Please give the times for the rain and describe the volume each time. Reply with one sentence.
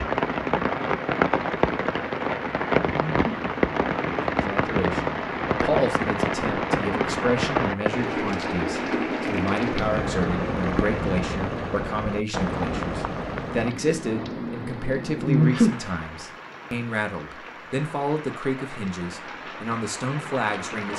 You can hear the rain from 0.0 to 20.9 s, getting quieter.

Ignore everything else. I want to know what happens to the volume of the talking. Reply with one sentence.
The loudness of the talking stays about the same.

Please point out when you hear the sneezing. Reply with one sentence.
The sneezing can be heard from 2.9 to 3.4 s and from 15.2 to 15.8 s.